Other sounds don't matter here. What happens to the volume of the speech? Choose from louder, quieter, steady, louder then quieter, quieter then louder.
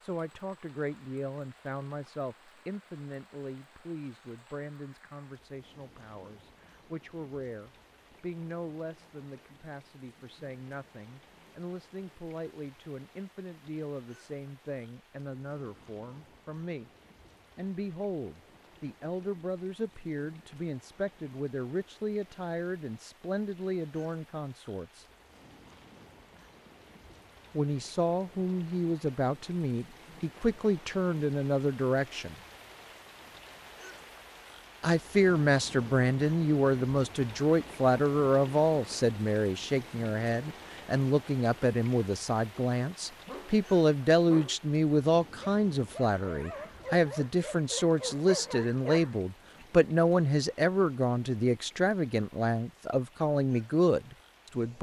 louder.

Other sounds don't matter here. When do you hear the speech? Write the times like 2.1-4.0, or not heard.
0.0-16.9, 17.6-25.1, 27.5-32.4, 34.8-54.7.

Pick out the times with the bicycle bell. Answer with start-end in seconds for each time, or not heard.
not heard.